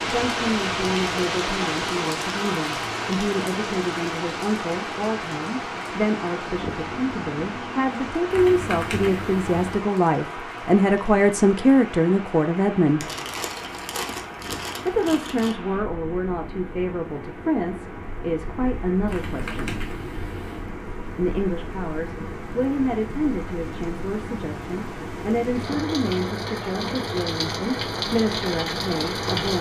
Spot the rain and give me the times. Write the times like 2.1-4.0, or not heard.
0.0-29.5.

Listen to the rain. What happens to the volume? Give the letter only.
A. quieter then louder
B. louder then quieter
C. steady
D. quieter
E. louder
A.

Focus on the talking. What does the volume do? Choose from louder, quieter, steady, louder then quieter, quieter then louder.
louder then quieter.